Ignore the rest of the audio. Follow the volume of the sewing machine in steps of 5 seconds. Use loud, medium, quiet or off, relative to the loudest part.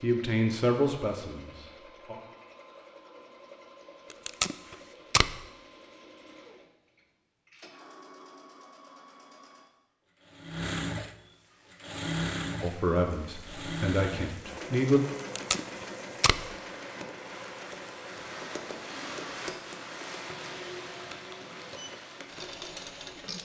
quiet, quiet, loud, medium, medium.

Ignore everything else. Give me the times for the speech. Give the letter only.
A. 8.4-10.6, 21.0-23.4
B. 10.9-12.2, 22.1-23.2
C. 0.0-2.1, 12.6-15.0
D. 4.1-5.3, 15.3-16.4
C.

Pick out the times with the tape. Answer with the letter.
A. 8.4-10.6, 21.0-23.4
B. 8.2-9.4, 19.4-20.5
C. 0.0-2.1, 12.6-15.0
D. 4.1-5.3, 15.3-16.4
D.